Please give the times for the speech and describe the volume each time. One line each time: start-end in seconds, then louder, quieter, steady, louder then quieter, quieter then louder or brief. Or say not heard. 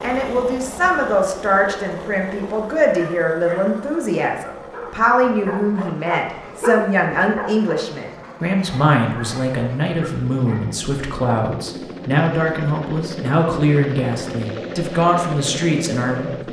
0.0-16.4 steady.